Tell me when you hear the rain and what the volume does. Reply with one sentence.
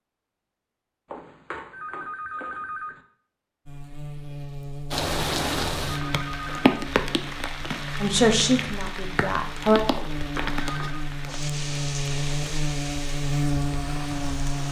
You can hear the rain from 4.9 to 14.6 s, getting quieter.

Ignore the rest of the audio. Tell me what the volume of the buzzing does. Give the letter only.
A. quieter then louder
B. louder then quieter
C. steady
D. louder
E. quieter
D.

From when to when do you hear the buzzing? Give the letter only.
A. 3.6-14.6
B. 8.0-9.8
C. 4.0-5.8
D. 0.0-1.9
A.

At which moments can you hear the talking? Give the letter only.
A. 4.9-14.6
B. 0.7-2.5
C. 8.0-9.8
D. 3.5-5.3
C.